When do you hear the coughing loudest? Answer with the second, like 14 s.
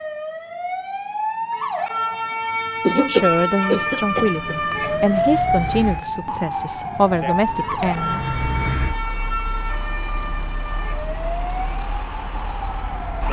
3 s.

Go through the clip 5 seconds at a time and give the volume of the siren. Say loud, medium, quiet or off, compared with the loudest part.
loud, loud, medium.